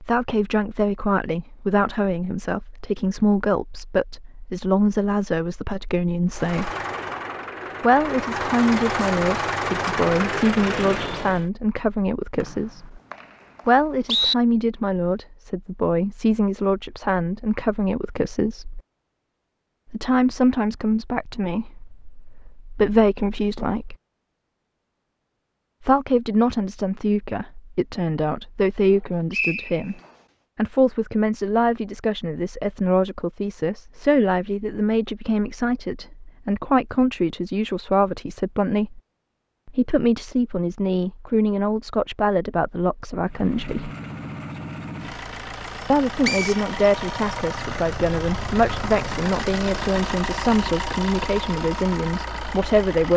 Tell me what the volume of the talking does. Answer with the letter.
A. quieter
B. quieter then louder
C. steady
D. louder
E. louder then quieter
C.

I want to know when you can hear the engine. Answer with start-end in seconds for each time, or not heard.
6.3-11.4, 43.2-53.1.